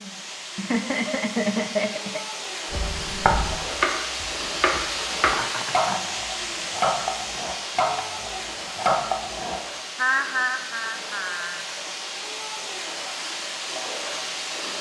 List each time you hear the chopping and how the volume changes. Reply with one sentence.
You can hear the chopping from 2.7 to 9.6 s, at a steady volume.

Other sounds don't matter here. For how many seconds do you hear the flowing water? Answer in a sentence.
You can hear the flowing water for 15 seconds altogether.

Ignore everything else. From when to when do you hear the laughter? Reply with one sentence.
The laughter can be heard from 0.4 to 2.2 s, from 5.2 to 6.2 s and from 9.9 to 11.7 s.